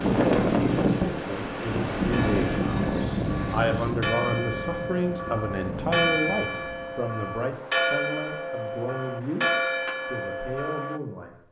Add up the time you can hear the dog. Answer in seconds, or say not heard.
not heard.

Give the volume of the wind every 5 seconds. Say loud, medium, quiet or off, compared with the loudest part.
loud, quiet, off.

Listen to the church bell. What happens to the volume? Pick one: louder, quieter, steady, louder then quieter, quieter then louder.
louder.